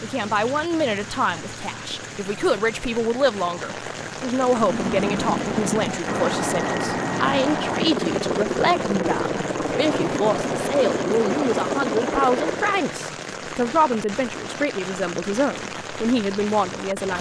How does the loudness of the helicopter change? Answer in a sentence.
The volume of the helicopter stays about the same.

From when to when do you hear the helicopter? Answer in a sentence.
The helicopter can be heard from 4.3 to 12.9 s.